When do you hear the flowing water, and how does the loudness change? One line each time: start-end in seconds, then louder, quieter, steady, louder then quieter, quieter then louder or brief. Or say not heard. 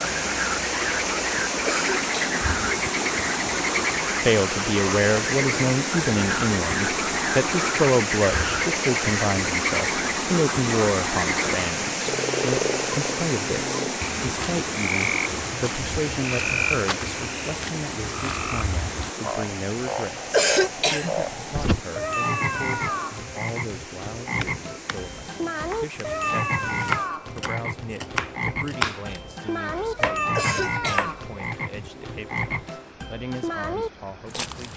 0.0-34.7 quieter.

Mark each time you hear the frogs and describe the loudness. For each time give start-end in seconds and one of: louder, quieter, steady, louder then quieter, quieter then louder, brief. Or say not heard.
0.0-34.7 steady.